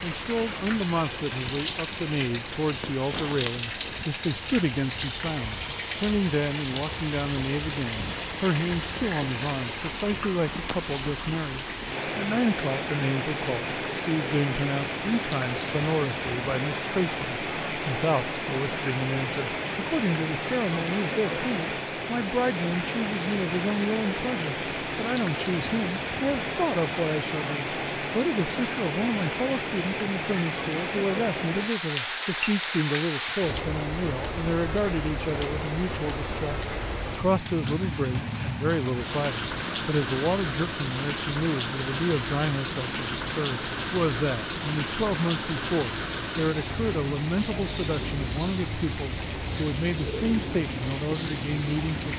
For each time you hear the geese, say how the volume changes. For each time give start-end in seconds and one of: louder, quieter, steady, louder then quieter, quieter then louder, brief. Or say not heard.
not heard.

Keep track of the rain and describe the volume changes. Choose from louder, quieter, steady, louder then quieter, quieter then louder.
steady.